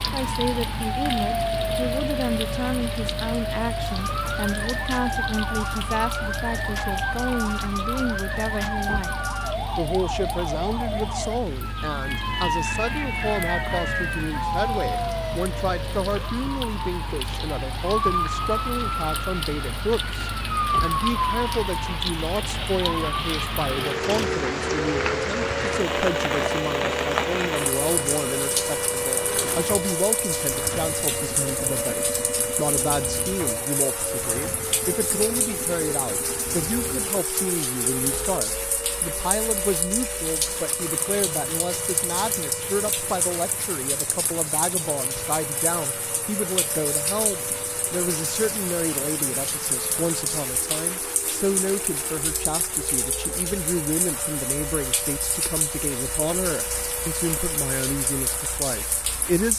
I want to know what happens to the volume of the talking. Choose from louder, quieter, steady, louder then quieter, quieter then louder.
steady.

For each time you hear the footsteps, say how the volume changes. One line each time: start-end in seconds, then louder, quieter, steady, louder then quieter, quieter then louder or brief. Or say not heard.
not heard.